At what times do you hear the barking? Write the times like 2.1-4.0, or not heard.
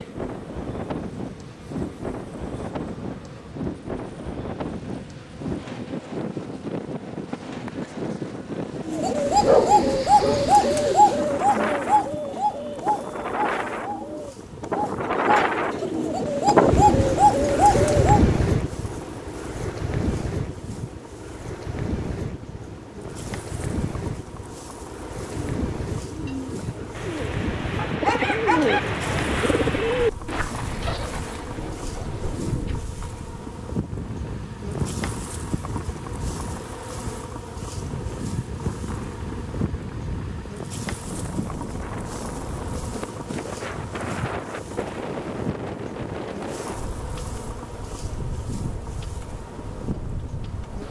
9.4-10.4, 27.8-28.8.